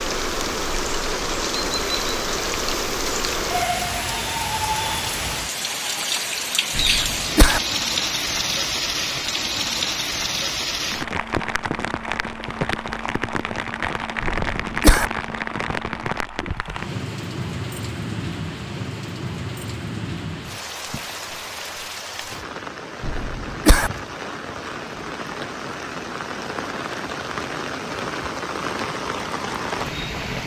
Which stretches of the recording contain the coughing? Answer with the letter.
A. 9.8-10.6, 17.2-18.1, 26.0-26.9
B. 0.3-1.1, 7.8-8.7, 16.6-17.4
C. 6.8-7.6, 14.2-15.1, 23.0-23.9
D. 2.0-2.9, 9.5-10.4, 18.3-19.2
C.